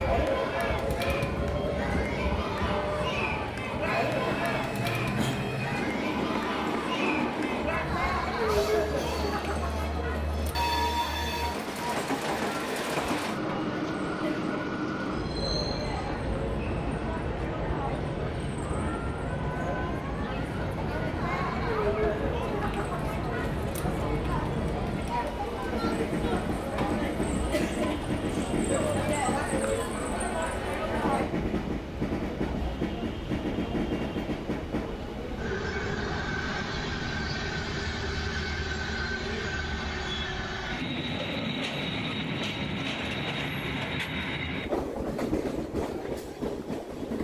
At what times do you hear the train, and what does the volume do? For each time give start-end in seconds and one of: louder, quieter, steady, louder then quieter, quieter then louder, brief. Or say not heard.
0.0-47.1 steady.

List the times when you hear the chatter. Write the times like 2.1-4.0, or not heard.
0.0-31.2.